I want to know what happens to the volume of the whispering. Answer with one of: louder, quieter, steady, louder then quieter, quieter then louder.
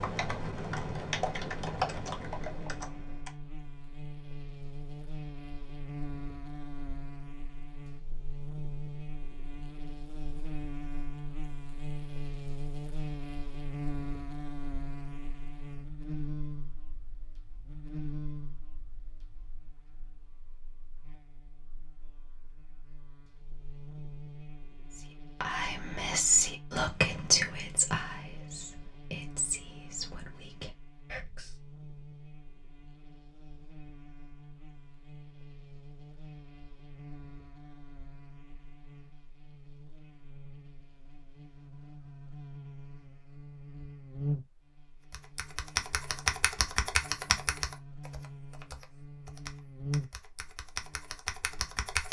quieter.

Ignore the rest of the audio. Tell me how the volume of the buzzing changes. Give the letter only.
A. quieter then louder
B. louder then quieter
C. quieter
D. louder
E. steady
A.